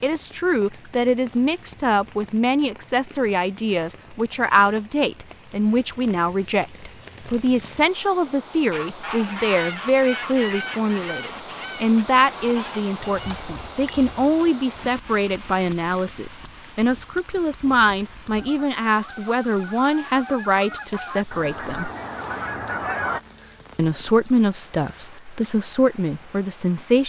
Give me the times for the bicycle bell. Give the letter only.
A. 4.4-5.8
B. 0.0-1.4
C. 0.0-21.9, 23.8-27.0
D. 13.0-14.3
D.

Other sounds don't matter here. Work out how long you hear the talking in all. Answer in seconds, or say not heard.
25 s.